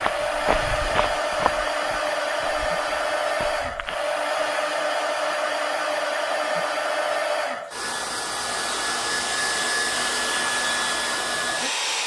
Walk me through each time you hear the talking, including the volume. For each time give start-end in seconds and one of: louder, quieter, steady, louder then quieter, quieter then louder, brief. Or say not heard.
not heard.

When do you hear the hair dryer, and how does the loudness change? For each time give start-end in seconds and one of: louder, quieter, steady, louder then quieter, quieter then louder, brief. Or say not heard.
0.0-12.0 steady.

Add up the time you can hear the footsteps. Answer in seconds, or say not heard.
4 s.